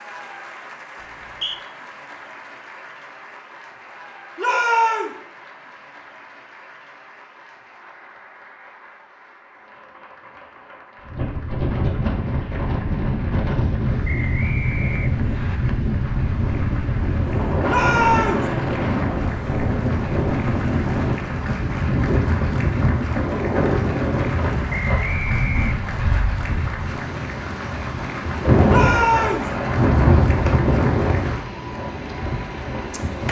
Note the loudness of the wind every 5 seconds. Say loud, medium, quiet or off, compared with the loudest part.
off, off, loud, loud, loud, loud, loud.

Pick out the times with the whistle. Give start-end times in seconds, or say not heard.
1.0-1.6, 14.1-15.6, 24.9-26.2.